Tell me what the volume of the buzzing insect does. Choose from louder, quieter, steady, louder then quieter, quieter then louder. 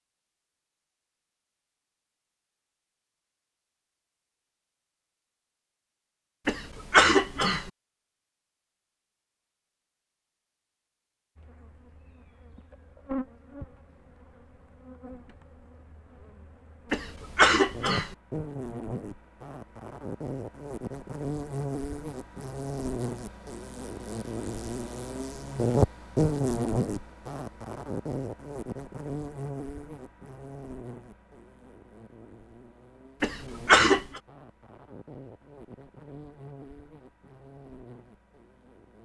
louder then quieter.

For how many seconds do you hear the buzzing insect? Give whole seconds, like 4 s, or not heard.
28 s.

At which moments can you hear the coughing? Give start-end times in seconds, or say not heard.
6.5-7.7, 16.9-18.1, 33.2-34.2.